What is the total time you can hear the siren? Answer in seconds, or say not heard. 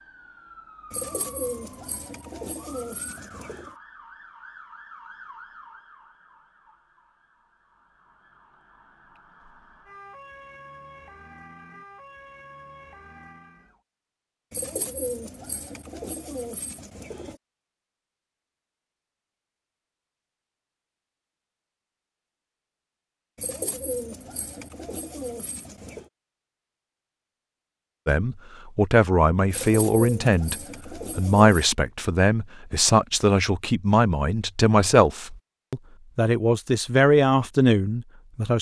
14 s.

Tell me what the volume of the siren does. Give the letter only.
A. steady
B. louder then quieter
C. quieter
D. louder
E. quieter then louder
E.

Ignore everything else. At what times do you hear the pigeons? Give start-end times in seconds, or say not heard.
0.9-3.7, 14.5-17.4, 23.4-26.1, 29.5-31.6.